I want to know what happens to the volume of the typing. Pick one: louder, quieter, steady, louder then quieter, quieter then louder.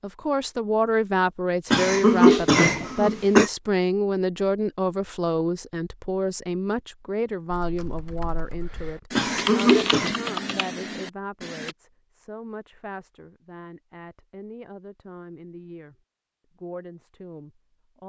louder then quieter.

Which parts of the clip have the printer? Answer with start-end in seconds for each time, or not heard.
not heard.